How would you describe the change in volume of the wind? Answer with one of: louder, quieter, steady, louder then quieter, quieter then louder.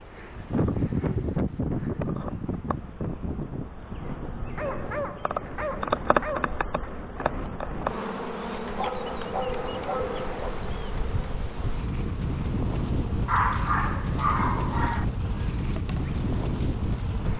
quieter then louder.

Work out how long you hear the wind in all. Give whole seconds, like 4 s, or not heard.
17 s.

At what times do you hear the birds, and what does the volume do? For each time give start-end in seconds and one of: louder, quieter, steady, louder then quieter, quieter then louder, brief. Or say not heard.
not heard.